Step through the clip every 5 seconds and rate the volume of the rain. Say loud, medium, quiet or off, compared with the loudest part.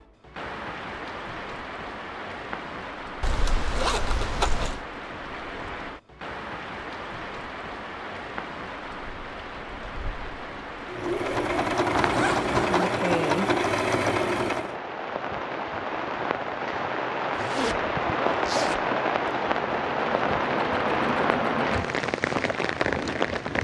medium, medium, medium, loud, loud.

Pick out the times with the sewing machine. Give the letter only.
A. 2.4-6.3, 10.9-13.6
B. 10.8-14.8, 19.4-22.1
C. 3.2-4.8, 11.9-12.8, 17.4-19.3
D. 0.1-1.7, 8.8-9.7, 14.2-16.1
B.